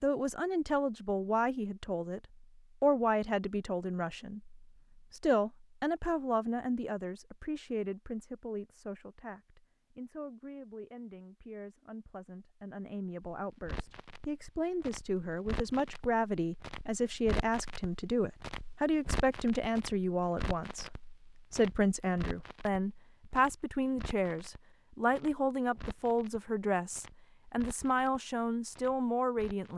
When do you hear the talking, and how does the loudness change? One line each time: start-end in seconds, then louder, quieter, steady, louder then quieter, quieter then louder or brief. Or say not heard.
0.0-29.7 quieter then louder.